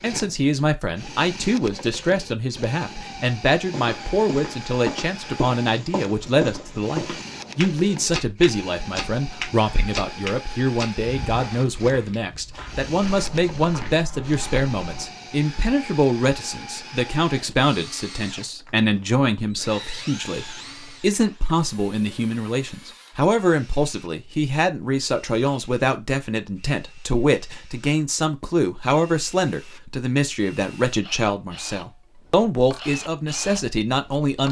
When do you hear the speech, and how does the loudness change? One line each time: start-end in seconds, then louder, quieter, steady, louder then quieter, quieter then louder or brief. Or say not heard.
0.0-34.4 steady.